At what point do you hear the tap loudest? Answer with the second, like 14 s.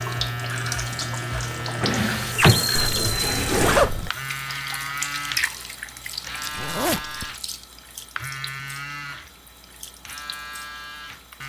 3 s.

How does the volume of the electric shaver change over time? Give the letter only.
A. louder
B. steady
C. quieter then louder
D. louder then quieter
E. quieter
E.